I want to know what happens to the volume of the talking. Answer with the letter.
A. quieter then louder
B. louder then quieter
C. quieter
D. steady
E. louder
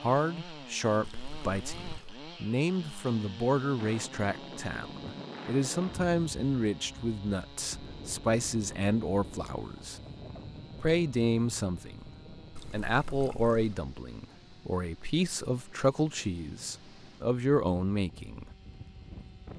D.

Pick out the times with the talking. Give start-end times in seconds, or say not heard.
0.0-10.0, 10.8-18.4.